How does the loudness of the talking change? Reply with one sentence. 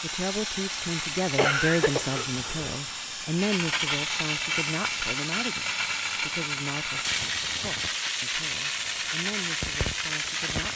The loudness of the talking goes down.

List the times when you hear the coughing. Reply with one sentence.
You can hear the coughing from 1.4 to 2.8 s.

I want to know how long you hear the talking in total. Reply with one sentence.
The talking can be heard for 11 seconds in total.